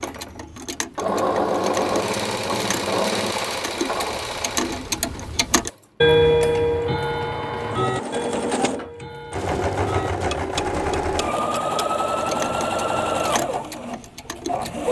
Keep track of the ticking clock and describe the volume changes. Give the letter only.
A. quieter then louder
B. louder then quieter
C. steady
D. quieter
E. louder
B.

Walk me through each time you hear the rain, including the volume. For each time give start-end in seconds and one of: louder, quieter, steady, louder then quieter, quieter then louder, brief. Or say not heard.
not heard.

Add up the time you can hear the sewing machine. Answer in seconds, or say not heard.
15 s.